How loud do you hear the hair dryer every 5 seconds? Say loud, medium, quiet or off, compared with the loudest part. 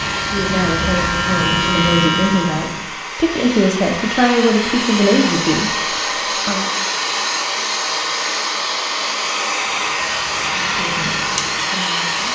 medium, loud, loud.